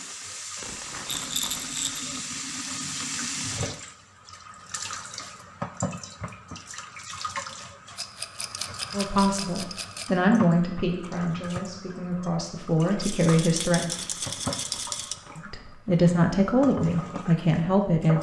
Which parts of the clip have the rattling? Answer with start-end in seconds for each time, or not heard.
1.1-2.0, 8.0-10.1, 13.0-15.2.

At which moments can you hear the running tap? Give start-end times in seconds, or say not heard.
0.0-18.1.